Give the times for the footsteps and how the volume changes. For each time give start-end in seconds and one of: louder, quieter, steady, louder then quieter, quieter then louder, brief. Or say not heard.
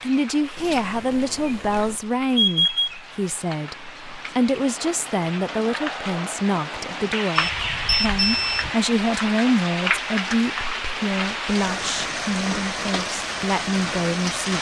not heard.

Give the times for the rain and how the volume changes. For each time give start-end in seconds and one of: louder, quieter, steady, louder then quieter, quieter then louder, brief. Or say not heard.
0.0-14.5 louder.